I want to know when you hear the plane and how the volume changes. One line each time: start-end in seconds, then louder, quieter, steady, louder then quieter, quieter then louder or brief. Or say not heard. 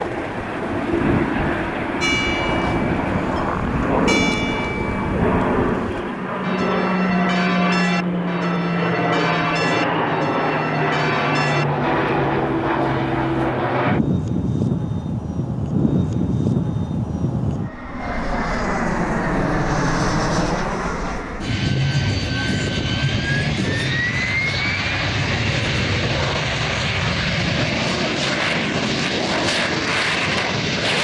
0.0-30.9 steady.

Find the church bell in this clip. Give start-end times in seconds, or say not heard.
2.0-13.6.